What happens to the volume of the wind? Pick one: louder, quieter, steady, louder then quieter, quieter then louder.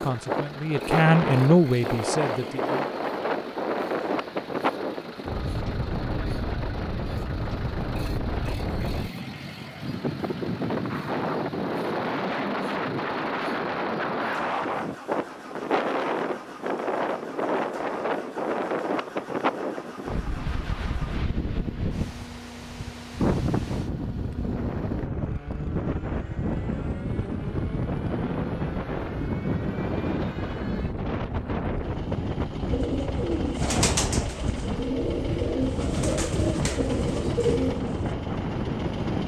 steady.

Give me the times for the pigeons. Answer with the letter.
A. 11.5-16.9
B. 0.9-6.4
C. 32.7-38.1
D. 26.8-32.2
C.